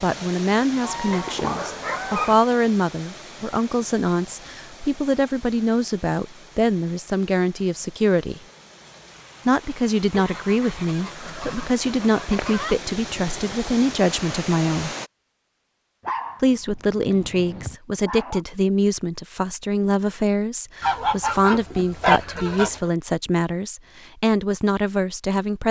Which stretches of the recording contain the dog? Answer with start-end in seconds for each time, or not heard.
1.1-2.4, 16.0-18.4.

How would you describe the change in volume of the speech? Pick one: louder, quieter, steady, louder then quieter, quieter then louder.
steady.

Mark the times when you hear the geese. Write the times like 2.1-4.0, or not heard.
0.8-2.4, 10.1-12.8, 20.8-22.9.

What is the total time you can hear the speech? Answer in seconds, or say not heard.
23 s.